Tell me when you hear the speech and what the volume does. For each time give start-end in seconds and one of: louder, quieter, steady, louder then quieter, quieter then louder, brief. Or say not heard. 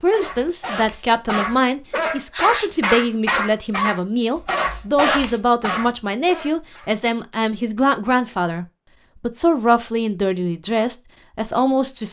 0.0-12.0 steady.